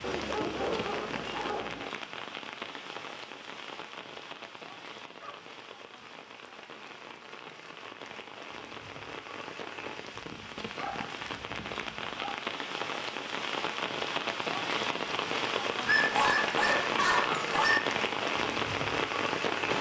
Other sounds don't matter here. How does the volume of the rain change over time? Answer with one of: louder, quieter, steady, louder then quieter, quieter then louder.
quieter then louder.